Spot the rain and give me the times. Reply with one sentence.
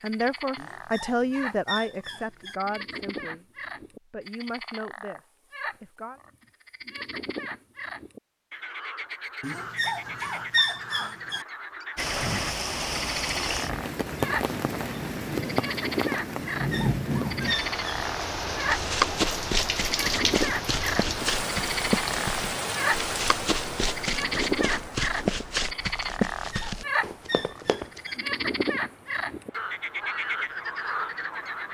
The rain can be heard from 11.9 to 31.6 s.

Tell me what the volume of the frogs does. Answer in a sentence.
The loudness of the frogs goes up.